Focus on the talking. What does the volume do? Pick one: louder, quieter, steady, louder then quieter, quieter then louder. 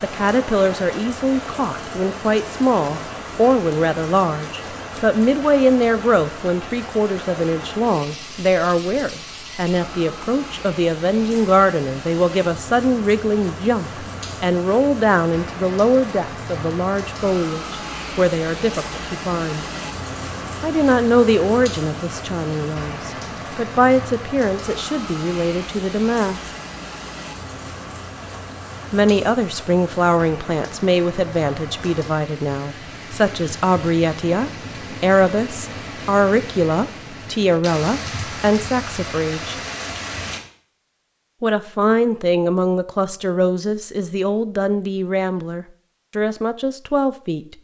steady.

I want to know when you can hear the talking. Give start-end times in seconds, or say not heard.
0.0-19.6, 20.6-26.5, 28.9-39.5, 41.4-47.5.